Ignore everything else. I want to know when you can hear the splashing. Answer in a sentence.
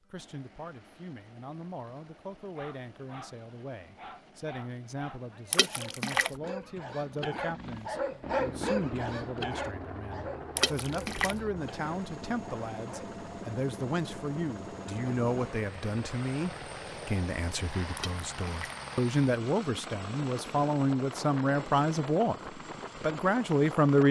The splashing can be heard from 5.5 to 6.3 s, from 10.6 to 11.4 s and from 17.9 to 18.8 s.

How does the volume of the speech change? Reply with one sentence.
The loudness of the speech goes up.